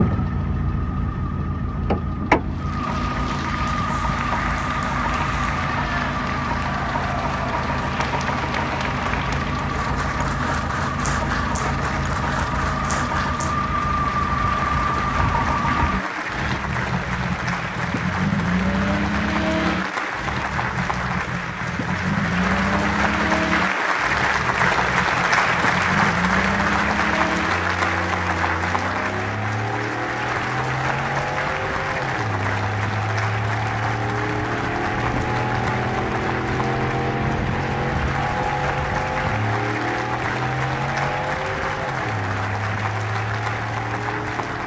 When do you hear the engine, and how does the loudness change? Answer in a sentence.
You can hear the engine from 0.0 to 44.6 s, at a steady volume.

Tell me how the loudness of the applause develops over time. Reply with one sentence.
The volume of the applause goes up, then down.